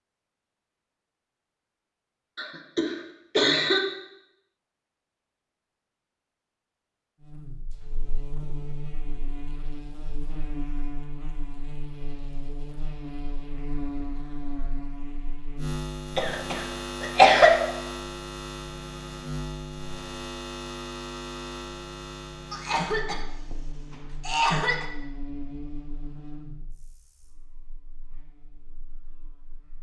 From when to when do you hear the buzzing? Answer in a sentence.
You can hear the buzzing from 7.2 to 29.7 s.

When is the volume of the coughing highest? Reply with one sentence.
The loudest moment of the coughing is at 17 seconds.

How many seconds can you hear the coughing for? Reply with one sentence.
You can hear the coughing for 5 seconds altogether.